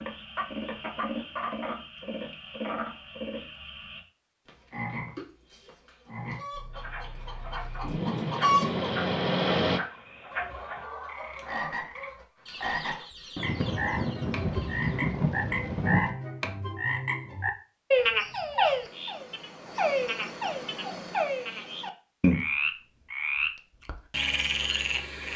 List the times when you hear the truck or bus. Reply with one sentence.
The truck or bus can be heard from 6.5 to 9.8 s.